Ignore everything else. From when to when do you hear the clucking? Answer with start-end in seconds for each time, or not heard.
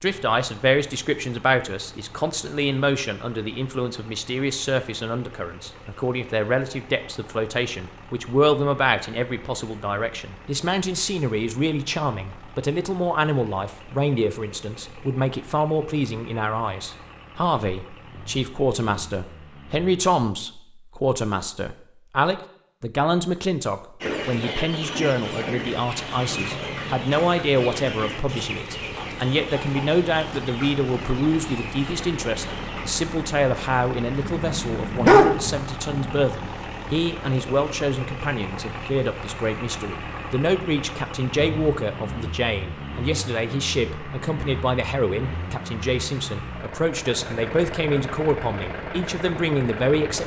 24.0-32.9.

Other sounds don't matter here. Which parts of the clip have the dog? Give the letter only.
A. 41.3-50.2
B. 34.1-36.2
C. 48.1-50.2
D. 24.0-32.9
B.